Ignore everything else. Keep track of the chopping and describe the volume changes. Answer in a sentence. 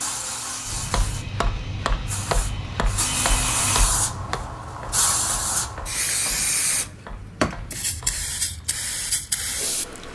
The volume of the chopping goes down.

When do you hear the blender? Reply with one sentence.
You can hear the blender from 0.0 to 3.9 s.